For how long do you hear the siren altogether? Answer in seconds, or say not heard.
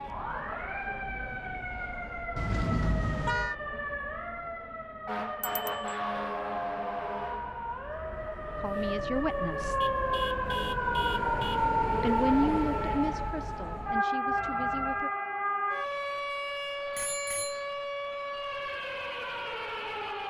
20 s.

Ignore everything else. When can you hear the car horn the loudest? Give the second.
3 s.